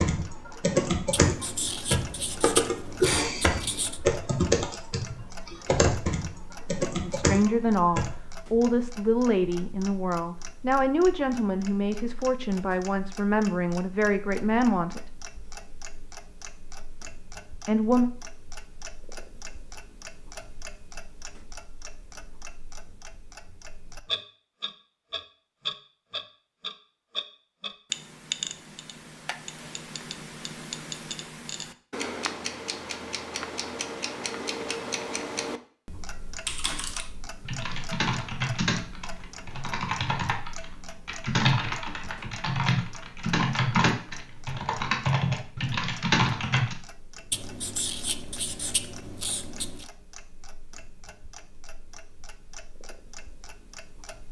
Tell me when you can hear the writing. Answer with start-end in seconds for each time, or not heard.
1.1-4.0, 47.3-49.9.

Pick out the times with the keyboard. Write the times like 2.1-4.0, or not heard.
0.0-8.2, 36.5-46.8.